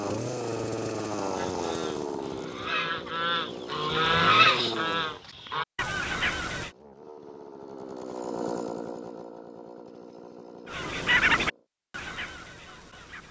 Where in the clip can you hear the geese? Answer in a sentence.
You can hear the geese from 1.3 to 6.7 s and from 10.7 to 13.2 s.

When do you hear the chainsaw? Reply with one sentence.
You can hear the chainsaw from 0.0 to 5.2 s and from 6.6 to 11.7 s.